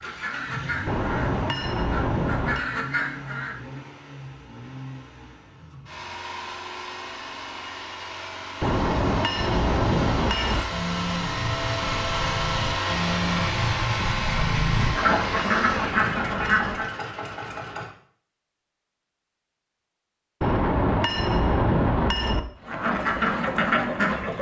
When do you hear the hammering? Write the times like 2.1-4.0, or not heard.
0.8-2.6, 8.6-10.7, 15.0-16.6, 20.4-22.4.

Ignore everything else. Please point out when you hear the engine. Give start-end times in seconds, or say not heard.
0.0-17.9.